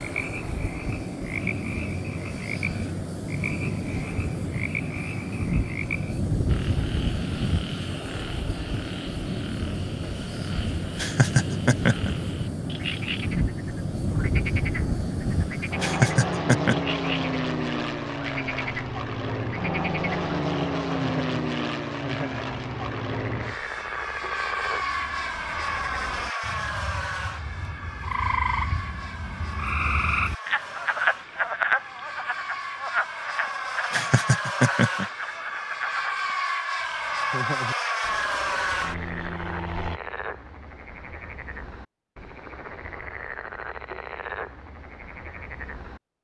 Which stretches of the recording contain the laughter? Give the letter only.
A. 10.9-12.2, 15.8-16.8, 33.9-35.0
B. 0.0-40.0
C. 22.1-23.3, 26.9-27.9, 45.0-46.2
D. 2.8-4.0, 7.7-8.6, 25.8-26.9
A.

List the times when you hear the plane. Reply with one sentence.
You can hear the plane from 0.0 to 40.0 s.